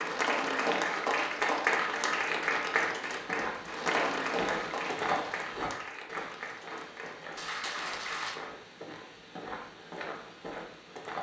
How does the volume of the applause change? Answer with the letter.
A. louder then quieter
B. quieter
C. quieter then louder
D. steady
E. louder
B.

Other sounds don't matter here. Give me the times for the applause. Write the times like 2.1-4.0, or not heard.
0.0-8.4.